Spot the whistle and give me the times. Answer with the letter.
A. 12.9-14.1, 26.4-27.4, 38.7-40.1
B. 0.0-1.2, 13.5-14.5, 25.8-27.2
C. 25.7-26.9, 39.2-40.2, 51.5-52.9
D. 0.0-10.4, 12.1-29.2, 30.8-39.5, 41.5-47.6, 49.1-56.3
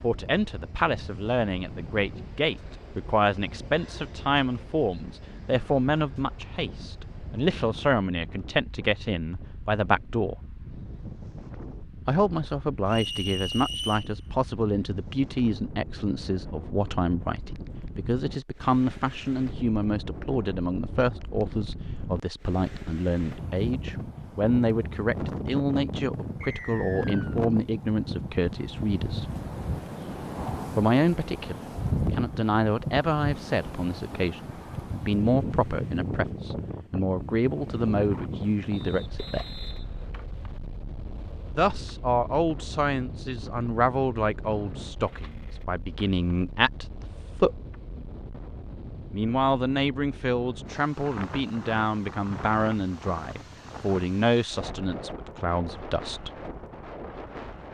A.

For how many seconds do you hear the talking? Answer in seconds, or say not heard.
50 s.